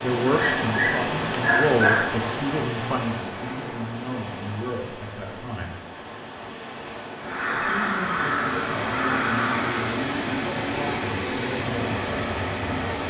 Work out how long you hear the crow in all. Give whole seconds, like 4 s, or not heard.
3 s.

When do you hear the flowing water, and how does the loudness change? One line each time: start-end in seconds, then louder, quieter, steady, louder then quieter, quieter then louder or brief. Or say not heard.
0.0-13.0 quieter then louder.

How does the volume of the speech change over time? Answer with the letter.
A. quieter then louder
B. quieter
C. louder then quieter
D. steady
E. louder
B.